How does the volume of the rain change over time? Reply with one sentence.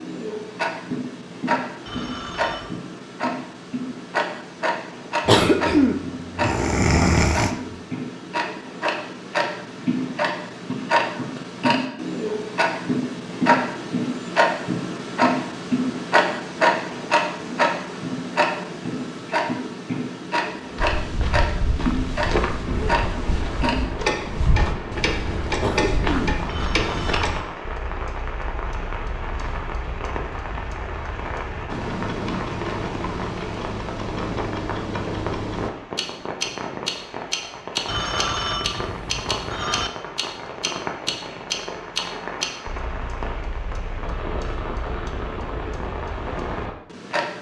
The volume of the rain stays about the same.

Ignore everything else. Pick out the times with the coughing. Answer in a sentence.
You can hear the coughing from 5.2 to 7.7 s and from 25.6 to 27.1 s.